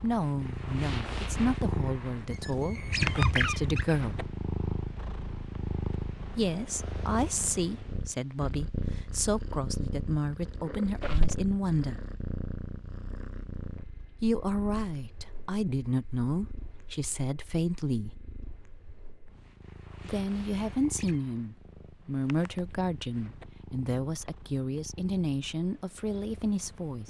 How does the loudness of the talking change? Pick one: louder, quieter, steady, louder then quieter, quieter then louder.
steady.